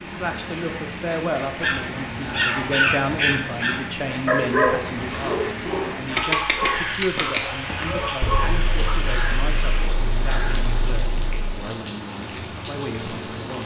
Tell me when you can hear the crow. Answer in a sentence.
The crow can be heard from 6.1 to 11.6 s.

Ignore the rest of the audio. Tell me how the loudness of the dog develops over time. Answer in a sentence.
The loudness of the dog goes down.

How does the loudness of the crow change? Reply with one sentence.
The volume of the crow goes down.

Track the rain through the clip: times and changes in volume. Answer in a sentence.
The rain can be heard from 0.0 to 13.6 s, at a steady volume.